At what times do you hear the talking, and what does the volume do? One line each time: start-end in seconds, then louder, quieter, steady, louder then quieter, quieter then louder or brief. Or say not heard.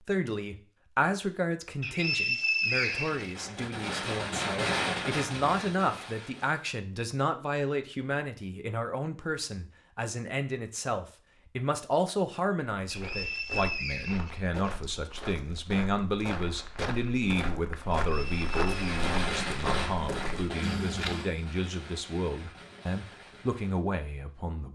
0.0-24.7 steady.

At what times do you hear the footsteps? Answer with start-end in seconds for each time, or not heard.
12.8-21.4.